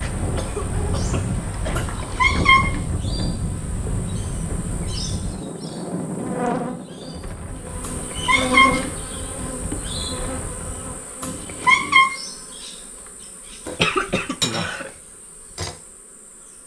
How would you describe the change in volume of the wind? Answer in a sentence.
The loudness of the wind goes down.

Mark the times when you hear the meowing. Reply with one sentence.
The meowing can be heard from 1.8 to 2.8 s, from 7.8 to 8.8 s and from 11.2 to 12.1 s.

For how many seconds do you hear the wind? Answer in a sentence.
The wind can be heard for 11 seconds in total.